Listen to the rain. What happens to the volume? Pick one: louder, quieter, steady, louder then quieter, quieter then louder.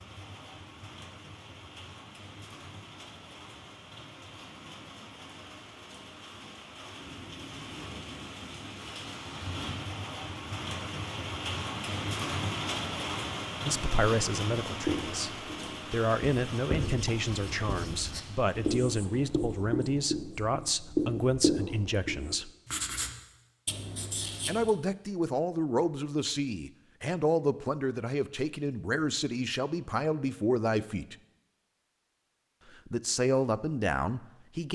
louder then quieter.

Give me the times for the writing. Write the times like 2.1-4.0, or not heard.
14.8-24.8.